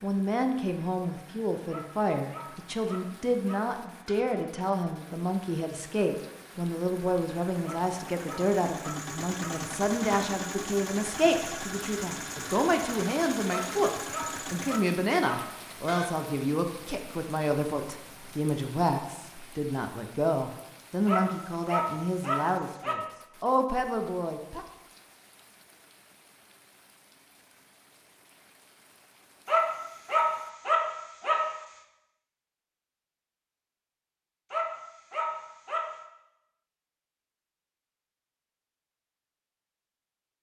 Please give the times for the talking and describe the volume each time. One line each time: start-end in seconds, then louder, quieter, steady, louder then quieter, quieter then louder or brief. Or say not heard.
0.0-24.6 steady.